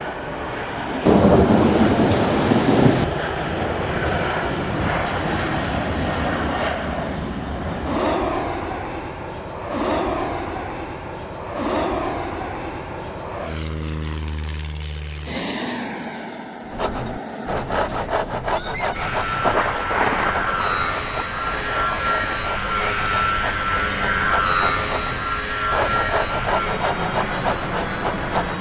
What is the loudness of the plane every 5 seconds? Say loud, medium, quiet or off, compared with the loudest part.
loud, loud, medium, medium, loud, loud.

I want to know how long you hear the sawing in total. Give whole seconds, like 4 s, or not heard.
12 s.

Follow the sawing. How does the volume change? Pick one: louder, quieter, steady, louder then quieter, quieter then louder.
quieter then louder.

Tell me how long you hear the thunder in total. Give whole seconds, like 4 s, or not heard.
5 s.